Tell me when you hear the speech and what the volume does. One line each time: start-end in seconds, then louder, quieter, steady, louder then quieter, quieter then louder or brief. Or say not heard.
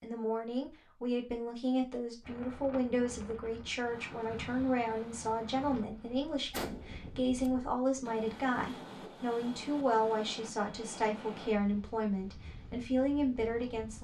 0.0-13.9 steady.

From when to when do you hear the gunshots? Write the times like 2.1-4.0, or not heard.
6.5-7.5.